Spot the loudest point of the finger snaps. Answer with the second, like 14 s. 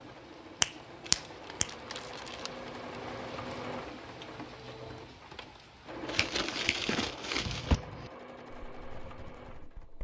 1 s.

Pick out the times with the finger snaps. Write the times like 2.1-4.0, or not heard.
0.6-1.7, 6.2-7.2.